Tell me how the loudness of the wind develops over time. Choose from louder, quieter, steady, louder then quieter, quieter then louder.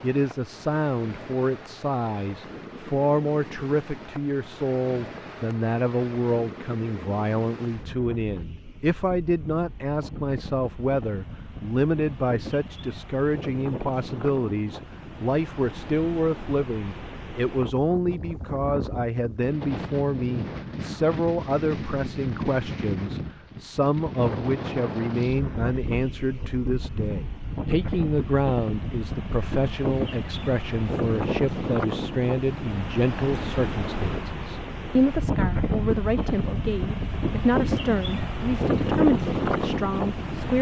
louder.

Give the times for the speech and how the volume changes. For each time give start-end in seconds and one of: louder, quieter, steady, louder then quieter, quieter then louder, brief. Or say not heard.
0.0-40.5 steady.